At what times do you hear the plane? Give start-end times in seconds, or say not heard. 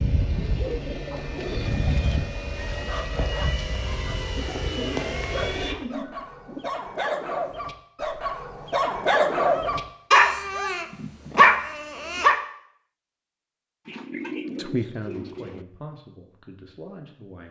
0.0-5.8.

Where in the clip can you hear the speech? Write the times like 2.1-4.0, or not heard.
14.6-17.4.